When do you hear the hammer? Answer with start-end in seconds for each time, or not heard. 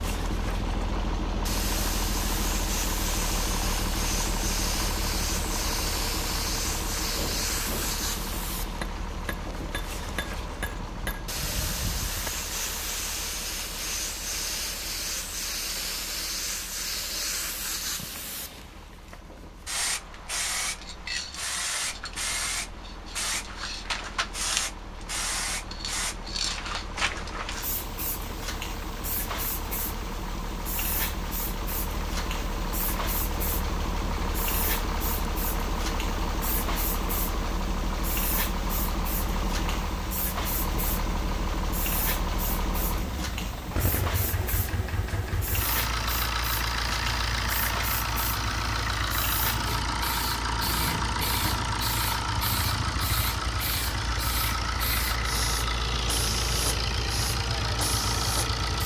7.2-12.3.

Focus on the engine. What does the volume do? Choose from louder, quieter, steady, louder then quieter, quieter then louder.
quieter then louder.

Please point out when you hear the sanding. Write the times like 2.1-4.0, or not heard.
not heard.